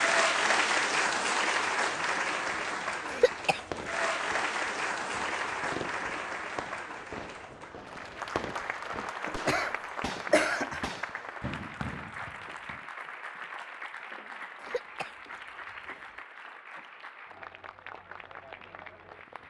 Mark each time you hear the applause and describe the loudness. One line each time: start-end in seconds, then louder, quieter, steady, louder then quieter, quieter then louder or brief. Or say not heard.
0.0-19.4 quieter.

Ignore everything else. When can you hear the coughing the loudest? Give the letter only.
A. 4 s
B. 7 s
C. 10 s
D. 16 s
C.